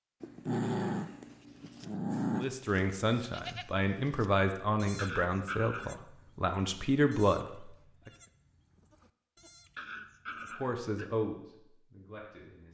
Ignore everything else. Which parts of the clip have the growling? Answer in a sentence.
You can hear the growling from 0.2 to 2.5 s, from 5.0 to 6.0 s and from 9.8 to 11.1 s.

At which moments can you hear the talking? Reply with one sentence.
The talking can be heard from 2.3 to 8.1 s and from 10.6 to 12.6 s.